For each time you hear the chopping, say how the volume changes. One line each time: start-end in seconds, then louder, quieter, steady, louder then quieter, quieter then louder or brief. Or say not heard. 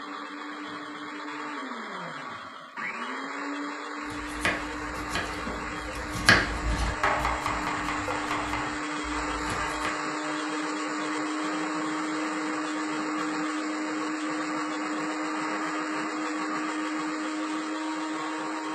4.0-9.9 louder then quieter.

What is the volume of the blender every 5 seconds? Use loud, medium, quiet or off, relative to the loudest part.
medium, loud, loud, loud.